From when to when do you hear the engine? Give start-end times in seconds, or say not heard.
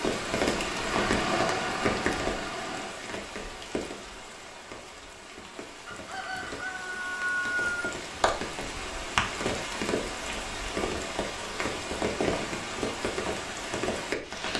0.0-3.0.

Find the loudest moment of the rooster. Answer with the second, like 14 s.
7 s.